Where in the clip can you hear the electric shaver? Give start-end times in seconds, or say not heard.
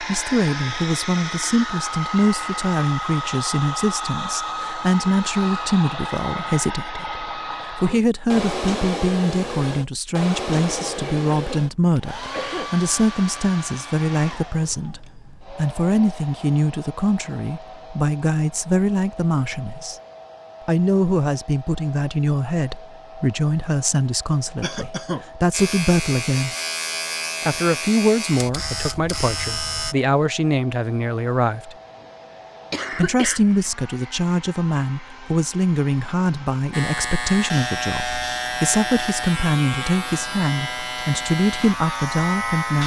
25.5-29.9, 36.7-42.8.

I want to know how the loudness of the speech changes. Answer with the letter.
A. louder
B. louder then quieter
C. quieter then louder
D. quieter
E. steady
E.